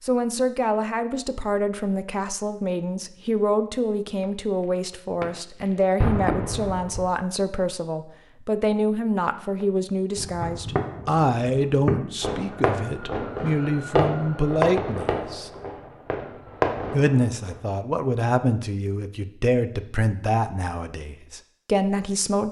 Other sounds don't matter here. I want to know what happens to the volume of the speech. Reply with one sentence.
The volume of the speech stays about the same.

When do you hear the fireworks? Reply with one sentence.
You can hear the fireworks from 4.2 to 7.0 s and from 9.6 to 17.6 s.